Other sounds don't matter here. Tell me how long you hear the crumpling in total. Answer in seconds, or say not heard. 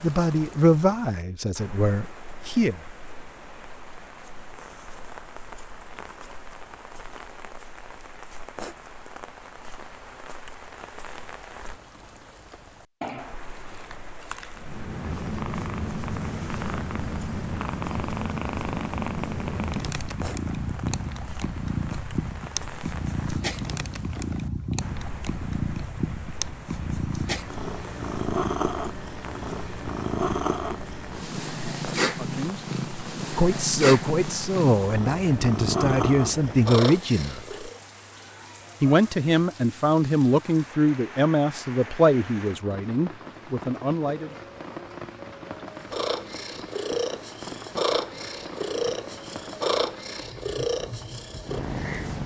2 s.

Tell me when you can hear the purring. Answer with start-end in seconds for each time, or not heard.
14.6-37.8, 45.9-52.2.